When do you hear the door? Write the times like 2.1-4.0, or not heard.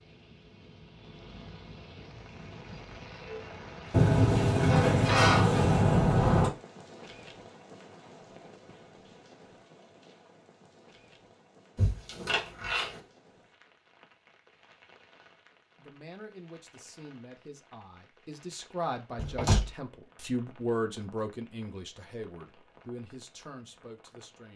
3.9-6.5, 11.8-13.0, 19.1-19.7.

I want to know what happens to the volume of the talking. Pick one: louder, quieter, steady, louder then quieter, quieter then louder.
louder then quieter.